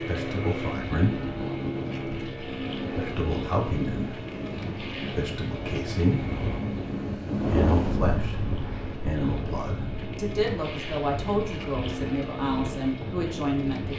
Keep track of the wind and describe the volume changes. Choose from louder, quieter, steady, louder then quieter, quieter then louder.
louder then quieter.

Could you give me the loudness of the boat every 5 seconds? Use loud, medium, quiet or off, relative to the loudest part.
loud, medium, loud.